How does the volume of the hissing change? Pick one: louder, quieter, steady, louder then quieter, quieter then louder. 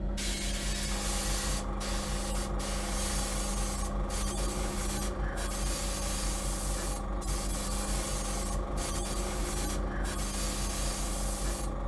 steady.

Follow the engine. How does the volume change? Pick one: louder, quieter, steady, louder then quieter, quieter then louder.
steady.